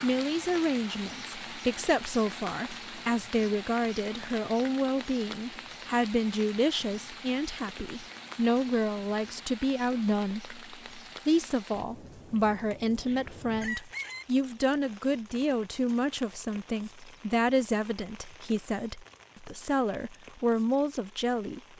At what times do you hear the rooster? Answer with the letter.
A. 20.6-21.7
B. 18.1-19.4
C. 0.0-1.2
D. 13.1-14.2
D.